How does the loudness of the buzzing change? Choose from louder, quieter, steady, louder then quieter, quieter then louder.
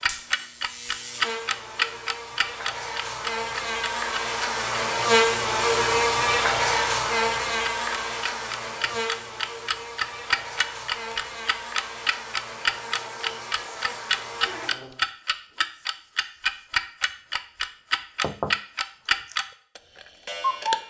louder then quieter.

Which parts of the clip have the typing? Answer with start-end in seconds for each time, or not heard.
not heard.